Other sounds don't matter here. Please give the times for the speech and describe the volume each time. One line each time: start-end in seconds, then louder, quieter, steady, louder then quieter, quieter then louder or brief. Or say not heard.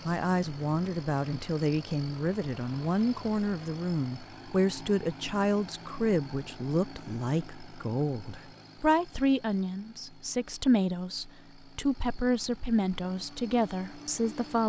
0.0-14.6 steady.